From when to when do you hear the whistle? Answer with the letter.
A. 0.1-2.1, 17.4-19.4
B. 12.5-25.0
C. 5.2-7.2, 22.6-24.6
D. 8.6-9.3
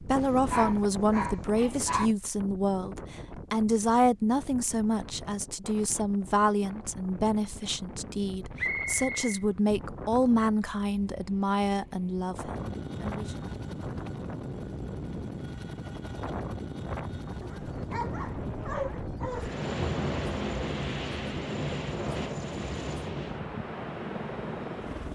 D.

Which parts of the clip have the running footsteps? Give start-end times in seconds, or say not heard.
not heard.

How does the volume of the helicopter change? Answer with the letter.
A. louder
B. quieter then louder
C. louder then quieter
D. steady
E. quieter
B.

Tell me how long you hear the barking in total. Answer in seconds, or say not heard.
4 s.